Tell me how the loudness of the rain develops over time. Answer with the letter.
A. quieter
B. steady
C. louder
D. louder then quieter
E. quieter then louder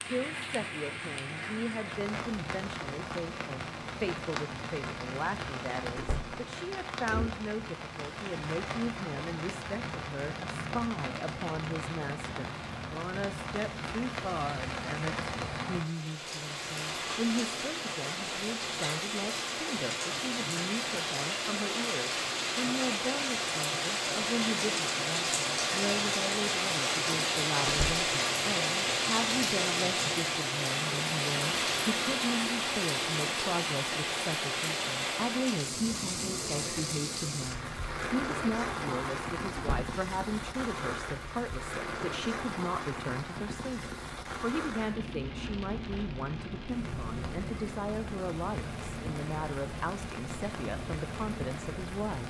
D.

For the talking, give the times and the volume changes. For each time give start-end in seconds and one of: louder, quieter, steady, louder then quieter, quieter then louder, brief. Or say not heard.
0.0-52.2 steady.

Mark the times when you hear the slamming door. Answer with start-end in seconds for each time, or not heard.
6.0-6.4, 27.6-28.1, 39.5-40.0.